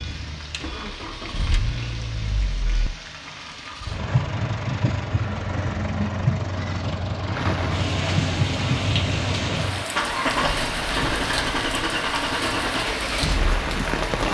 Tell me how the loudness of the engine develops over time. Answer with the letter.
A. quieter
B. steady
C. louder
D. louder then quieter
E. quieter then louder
C.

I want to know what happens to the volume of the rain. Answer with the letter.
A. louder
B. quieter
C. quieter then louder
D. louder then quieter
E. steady
A.